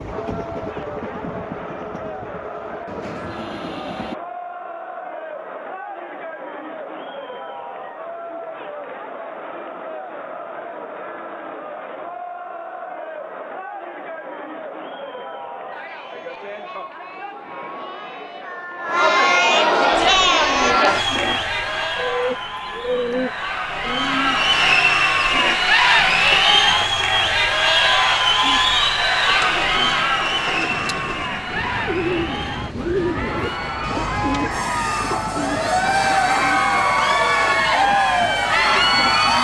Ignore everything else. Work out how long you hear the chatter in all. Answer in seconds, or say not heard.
39 s.